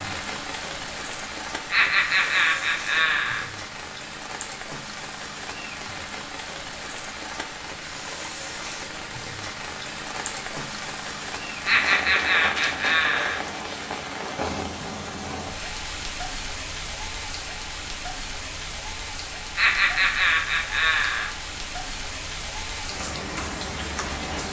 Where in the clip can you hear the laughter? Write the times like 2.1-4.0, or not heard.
1.7-3.5, 11.6-13.4, 19.6-21.3.